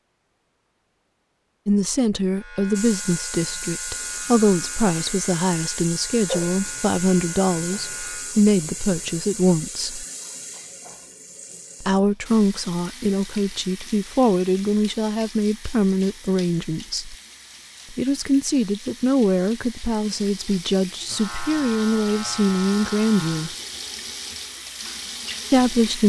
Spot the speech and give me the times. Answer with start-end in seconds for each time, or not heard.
1.6-10.1, 11.8-17.1, 17.9-23.5, 25.5-26.0.